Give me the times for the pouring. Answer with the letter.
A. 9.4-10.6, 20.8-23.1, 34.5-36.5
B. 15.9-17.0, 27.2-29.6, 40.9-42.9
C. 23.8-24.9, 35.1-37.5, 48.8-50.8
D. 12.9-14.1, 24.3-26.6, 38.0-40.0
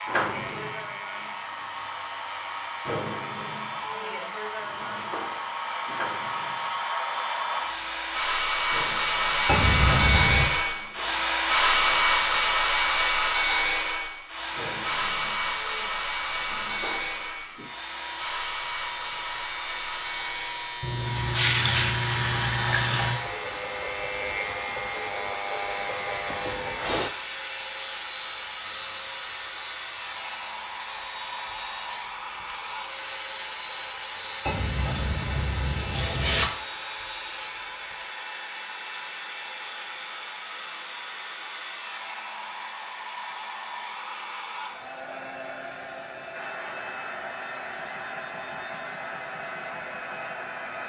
A.